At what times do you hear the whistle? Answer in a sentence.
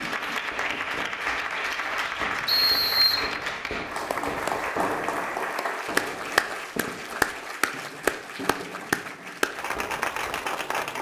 The whistle can be heard from 2.5 to 3.2 s.